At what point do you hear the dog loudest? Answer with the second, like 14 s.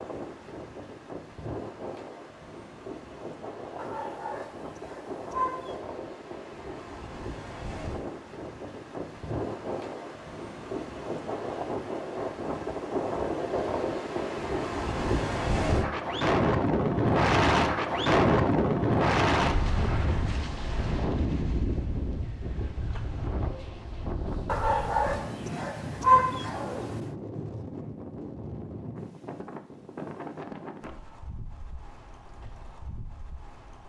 26 s.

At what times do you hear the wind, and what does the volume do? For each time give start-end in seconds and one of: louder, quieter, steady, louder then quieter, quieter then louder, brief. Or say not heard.
0.0-33.8 louder then quieter.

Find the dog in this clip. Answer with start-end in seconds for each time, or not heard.
3.8-5.8, 24.4-27.0.